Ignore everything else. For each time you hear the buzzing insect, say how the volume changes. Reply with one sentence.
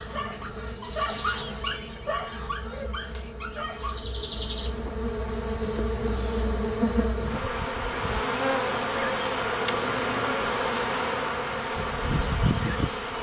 You can hear the buzzing insect from 0.0 to 13.1 s, getting louder.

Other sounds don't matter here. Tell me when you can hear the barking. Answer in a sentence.
The barking can be heard from 0.0 to 4.0 s.